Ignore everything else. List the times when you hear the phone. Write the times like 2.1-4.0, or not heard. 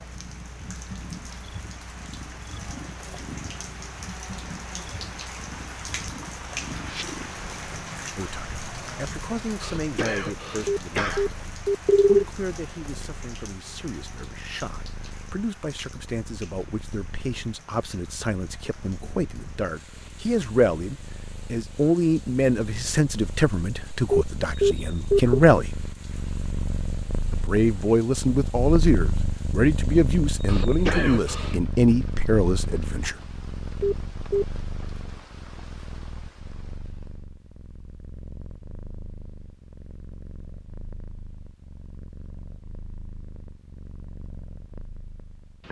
10.7-12.2, 24.1-25.4, 33.8-34.5.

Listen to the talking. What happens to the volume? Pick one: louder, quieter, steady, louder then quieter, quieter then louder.
louder.